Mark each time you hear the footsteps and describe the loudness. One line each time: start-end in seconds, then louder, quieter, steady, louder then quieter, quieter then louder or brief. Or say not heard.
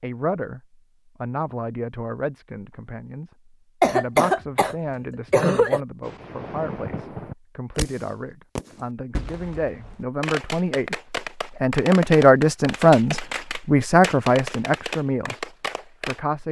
not heard.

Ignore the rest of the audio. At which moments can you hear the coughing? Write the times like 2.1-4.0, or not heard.
3.8-5.8.